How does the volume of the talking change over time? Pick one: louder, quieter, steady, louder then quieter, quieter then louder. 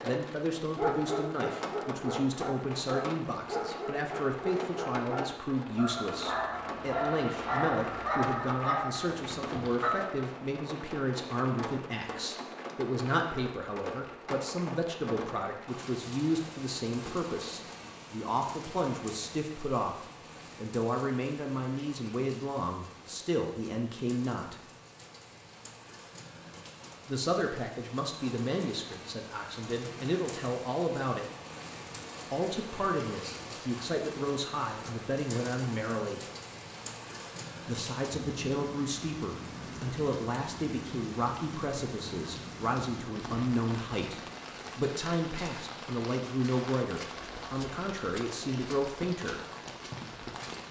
steady.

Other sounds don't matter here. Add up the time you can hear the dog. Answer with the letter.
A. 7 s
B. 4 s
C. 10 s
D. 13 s
C.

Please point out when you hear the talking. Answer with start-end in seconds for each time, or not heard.
0.0-24.6, 27.1-31.2, 32.3-36.2, 37.6-49.4.